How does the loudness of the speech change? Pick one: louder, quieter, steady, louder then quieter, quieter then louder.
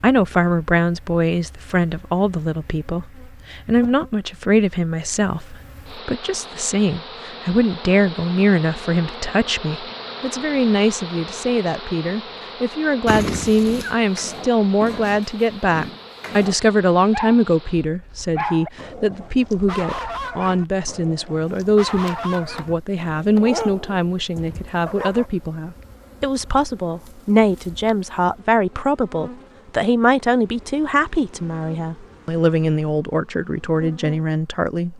steady.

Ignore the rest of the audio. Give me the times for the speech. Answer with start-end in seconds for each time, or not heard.
0.0-34.9.